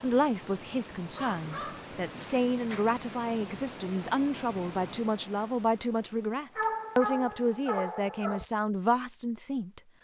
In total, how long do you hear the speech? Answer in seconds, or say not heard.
10 s.